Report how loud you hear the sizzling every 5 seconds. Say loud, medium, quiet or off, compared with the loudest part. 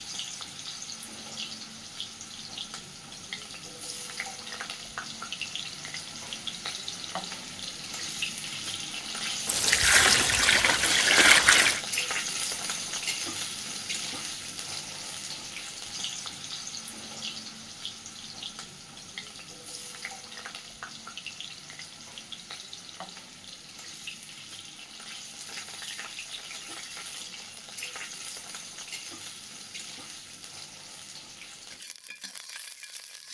medium, loud, loud, medium, medium, medium, quiet.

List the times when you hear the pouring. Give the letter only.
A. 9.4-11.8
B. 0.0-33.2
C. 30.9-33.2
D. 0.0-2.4
A.